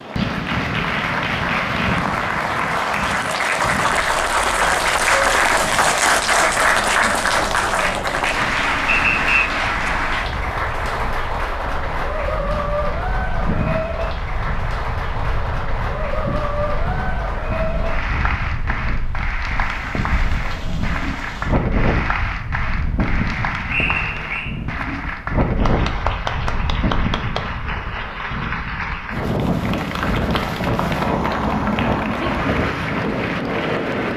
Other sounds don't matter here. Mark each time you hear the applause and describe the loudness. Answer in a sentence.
The applause can be heard from 0.0 to 34.1 s, getting quieter.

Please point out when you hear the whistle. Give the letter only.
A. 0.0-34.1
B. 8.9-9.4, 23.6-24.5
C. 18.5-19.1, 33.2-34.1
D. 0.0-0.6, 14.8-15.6
B.